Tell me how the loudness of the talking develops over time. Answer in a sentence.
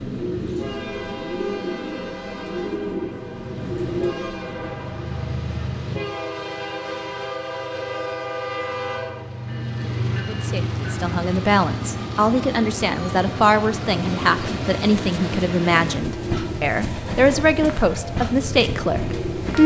The loudness of the talking stays about the same.